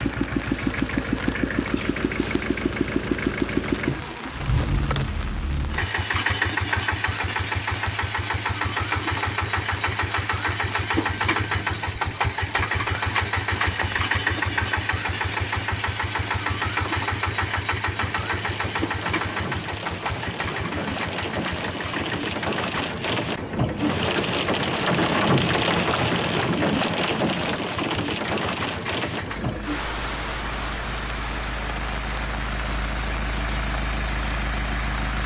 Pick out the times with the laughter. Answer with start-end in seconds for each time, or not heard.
not heard.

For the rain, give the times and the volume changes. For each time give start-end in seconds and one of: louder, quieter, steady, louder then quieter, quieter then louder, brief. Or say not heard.
0.0-35.2 louder then quieter.